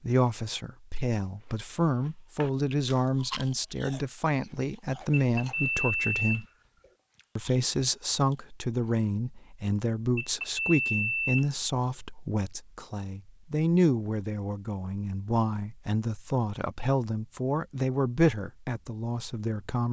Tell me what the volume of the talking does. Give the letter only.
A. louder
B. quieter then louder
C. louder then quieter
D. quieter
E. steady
E.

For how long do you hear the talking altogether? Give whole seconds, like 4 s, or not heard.
19 s.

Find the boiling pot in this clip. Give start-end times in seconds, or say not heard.
not heard.